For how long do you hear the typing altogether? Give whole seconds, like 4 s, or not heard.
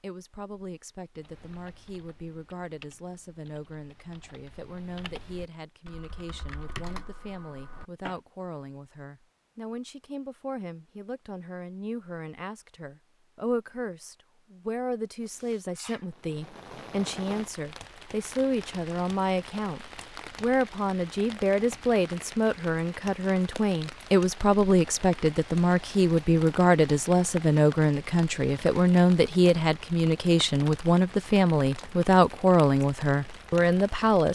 7 s.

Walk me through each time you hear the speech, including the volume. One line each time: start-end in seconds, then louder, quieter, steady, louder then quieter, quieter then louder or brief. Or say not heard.
0.0-34.2 louder.